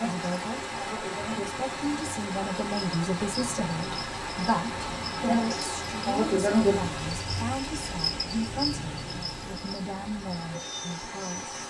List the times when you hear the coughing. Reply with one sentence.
You can't hear the coughing here.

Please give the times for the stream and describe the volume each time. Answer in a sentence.
You can hear the stream from 0.0 to 11.6 s, getting quieter.